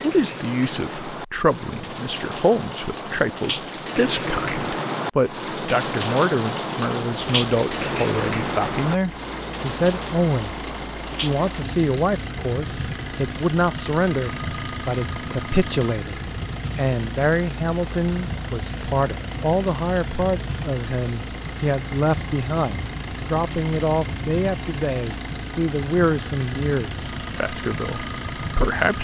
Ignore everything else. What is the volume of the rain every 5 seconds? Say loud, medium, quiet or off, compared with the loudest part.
loud, loud, medium, medium, medium, medium.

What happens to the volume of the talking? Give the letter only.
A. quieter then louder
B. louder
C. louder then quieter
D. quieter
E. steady
E.